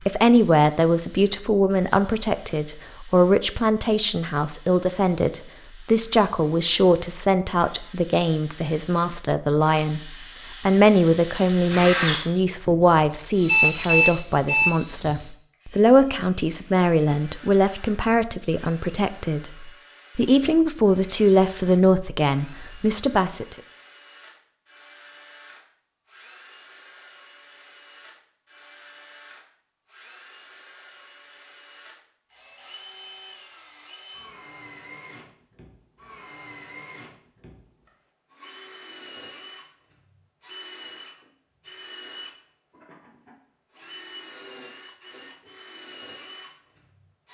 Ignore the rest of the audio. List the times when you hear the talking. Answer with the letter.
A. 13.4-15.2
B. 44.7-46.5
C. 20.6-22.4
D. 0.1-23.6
D.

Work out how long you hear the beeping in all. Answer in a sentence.
The beeping can be heard for 2 seconds in total.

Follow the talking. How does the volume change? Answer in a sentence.
The loudness of the talking stays about the same.